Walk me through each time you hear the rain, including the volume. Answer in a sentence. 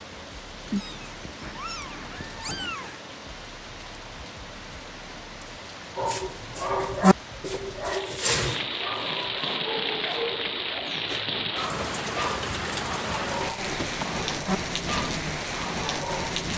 The rain can be heard from 0.0 to 16.5 s, getting louder.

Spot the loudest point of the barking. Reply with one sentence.
The volume of the barking peaks at 7 seconds.